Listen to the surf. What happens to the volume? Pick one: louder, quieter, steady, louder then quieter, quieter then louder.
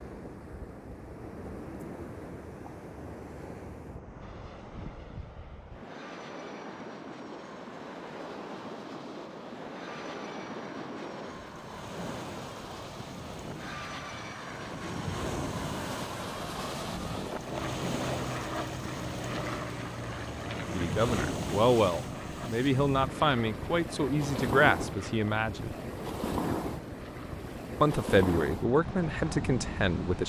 louder.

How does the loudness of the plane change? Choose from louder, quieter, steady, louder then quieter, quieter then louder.
louder then quieter.